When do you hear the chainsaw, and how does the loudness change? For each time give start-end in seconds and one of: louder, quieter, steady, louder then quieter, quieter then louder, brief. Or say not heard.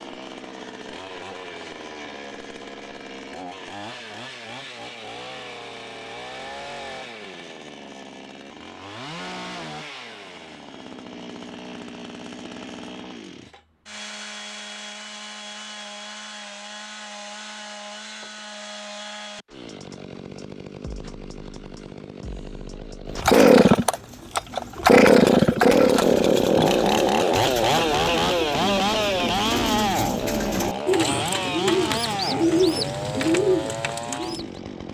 0.0-34.8 louder then quieter.